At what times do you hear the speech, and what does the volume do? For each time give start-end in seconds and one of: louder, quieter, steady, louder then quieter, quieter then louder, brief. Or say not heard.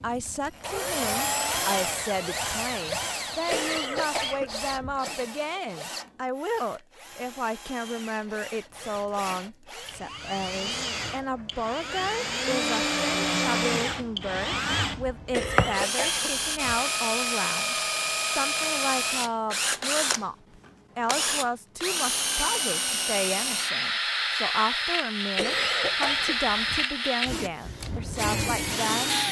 0.0-29.1 steady.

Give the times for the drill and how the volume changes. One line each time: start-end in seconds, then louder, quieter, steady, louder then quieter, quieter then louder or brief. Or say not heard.
0.0-29.2 quieter then louder.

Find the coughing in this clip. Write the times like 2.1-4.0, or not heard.
3.5-5.0, 15.3-16.8, 25.4-26.9.